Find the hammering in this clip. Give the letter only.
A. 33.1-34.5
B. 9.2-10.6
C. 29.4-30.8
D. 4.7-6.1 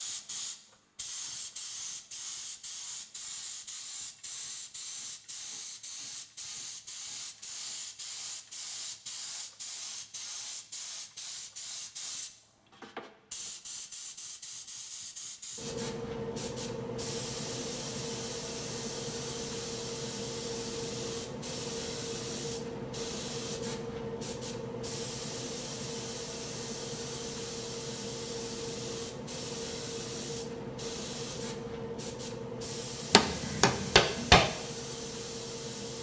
A.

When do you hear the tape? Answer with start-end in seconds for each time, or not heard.
not heard.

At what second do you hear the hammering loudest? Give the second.
34 s.